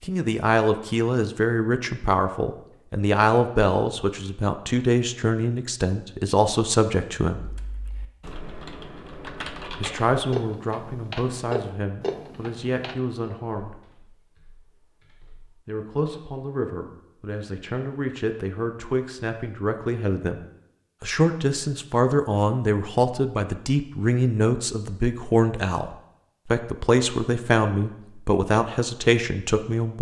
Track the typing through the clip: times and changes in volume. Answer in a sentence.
You can hear the typing from 7.3 to 15.6 s, getting louder then quieter.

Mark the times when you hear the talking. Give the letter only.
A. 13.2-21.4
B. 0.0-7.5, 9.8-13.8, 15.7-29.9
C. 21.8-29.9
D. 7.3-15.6
B.